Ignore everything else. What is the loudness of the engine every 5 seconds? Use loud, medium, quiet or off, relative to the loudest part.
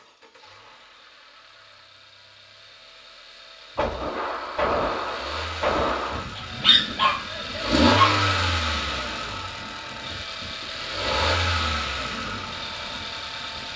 quiet, loud, loud.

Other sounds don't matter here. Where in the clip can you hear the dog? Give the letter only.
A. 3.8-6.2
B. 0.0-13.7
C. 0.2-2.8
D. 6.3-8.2
D.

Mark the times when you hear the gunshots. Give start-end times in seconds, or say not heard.
3.8-6.2.